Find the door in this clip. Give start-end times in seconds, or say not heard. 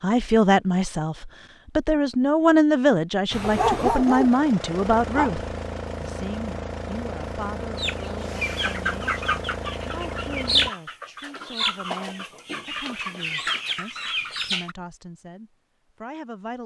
not heard.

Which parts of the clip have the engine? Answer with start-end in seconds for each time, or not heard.
3.3-10.7.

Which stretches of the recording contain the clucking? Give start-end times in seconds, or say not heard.
7.8-14.8.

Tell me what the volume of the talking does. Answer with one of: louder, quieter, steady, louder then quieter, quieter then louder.
quieter.